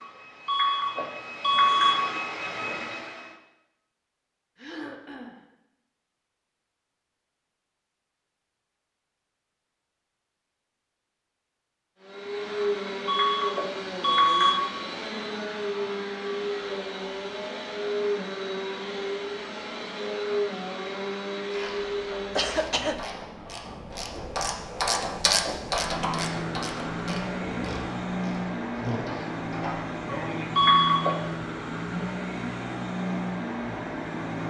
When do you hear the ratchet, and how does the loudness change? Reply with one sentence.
The ratchet can be heard from 21.4 to 30.0 s, getting louder then quieter.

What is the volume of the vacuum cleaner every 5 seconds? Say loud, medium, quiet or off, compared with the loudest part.
medium, off, loud, loud, loud, loud, loud.